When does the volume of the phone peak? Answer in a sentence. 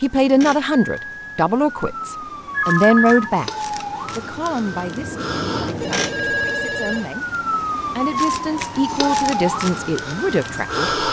The volume of the phone peaks at 3 seconds.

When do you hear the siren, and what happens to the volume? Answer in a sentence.
The siren can be heard from 0.0 to 11.0 s, getting louder.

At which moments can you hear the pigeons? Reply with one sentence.
The pigeons can't be heard in this clip.